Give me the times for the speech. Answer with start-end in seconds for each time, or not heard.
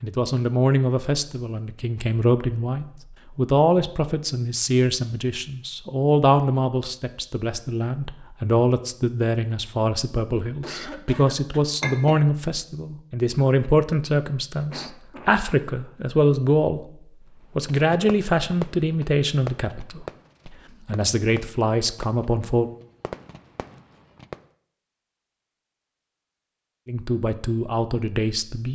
0.0-16.9, 17.6-22.7, 26.9-28.7.